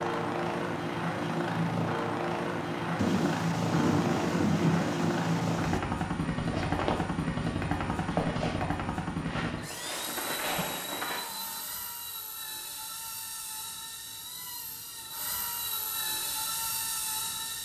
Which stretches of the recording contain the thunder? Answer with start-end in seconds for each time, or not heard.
3.0-5.8.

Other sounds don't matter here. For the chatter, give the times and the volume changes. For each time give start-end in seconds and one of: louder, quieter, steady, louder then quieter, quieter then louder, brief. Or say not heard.
not heard.